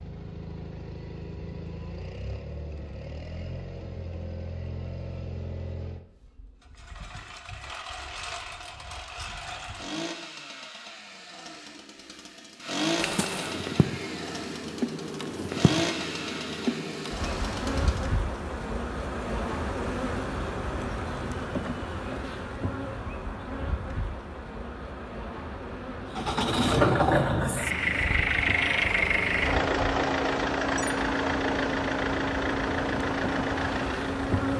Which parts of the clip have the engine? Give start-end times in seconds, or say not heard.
0.0-18.1, 26.1-34.5.